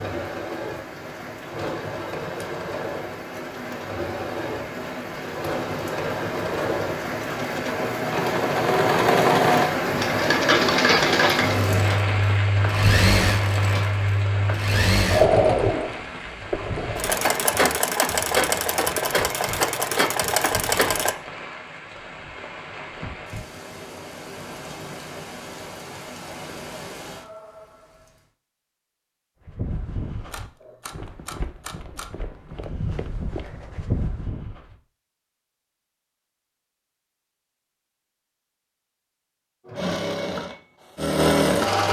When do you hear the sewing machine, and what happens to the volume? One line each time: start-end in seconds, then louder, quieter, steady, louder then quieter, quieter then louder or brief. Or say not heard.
0.0-21.1 louder
39.6-41.8 brief.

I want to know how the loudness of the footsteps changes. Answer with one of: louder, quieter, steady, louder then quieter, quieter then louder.
quieter then louder.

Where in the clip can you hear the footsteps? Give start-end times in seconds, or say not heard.
29.4-34.8.